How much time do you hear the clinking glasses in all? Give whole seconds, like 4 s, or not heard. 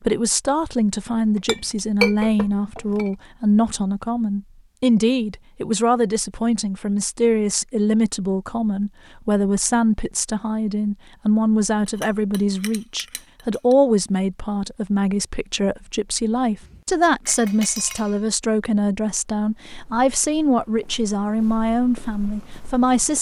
5 s.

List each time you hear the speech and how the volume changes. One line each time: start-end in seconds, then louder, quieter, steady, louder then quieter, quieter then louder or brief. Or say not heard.
0.0-23.1 steady.